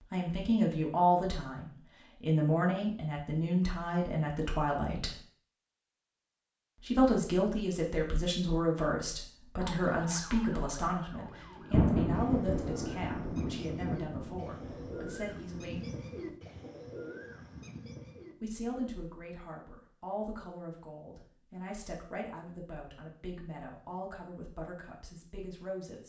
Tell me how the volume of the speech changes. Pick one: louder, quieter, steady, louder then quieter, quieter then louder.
quieter.